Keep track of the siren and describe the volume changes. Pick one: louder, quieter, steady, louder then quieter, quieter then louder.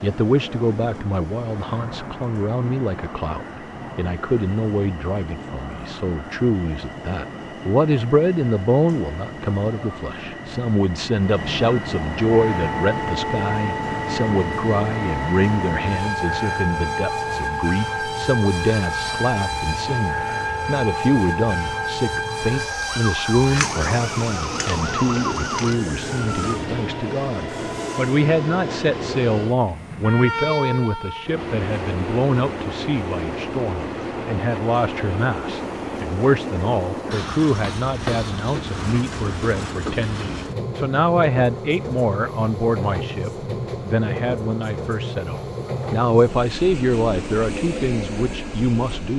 steady.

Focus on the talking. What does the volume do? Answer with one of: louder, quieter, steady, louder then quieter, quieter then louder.
steady.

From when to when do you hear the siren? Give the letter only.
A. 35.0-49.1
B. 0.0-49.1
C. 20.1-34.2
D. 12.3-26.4
D.